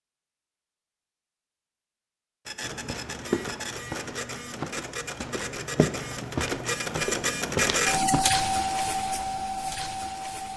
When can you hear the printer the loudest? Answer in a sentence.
The loudest moment of the printer is at 8 seconds.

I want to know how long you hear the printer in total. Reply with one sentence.
The printer can be heard for 8 seconds in total.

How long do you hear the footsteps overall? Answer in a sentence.
You can hear the footsteps for 6 seconds altogether.